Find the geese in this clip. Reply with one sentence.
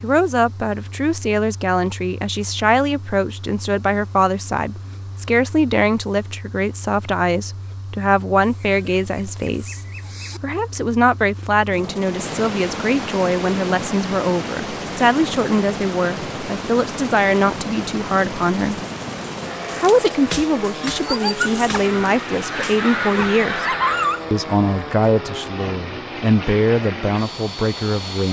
The geese can be heard from 8.3 to 10.4 s and from 21.8 to 24.1 s.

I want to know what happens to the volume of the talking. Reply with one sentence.
The volume of the talking stays about the same.